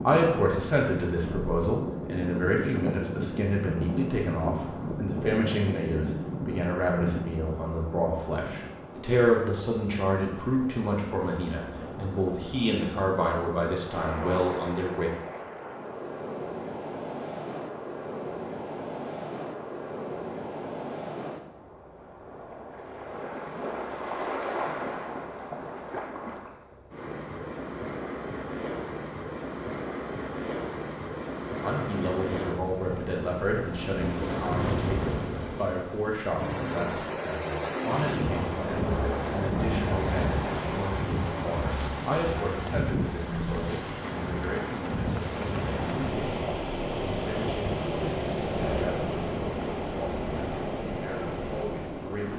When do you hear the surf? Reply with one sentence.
The surf can be heard from 0.0 to 52.3 s.